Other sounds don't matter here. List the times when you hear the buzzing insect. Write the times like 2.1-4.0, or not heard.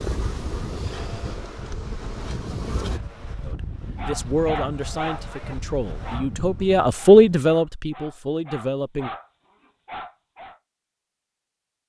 0.0-3.0.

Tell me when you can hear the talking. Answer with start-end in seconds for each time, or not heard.
3.5-9.1.